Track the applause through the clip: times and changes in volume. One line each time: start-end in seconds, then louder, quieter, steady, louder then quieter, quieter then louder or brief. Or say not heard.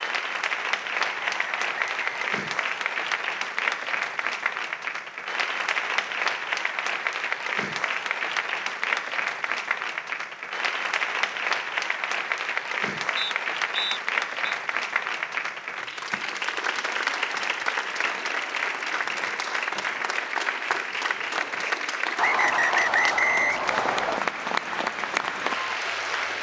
0.0-26.3 steady.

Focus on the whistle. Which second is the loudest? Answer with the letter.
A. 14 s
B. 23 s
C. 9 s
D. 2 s
B.